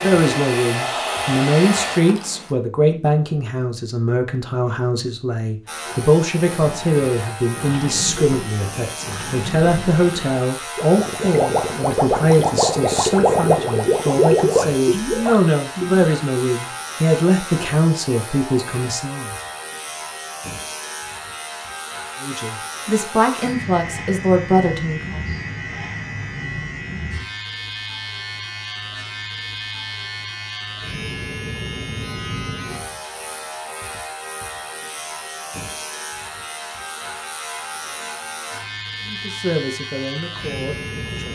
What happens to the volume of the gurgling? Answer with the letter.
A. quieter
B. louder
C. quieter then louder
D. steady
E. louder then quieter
B.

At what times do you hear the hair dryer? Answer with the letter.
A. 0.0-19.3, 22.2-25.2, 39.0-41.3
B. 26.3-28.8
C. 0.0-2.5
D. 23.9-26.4
C.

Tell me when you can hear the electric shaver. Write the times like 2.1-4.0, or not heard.
0.0-2.5, 5.7-41.3.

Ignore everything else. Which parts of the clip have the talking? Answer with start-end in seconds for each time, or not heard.
0.0-19.3, 22.2-25.2, 39.0-41.3.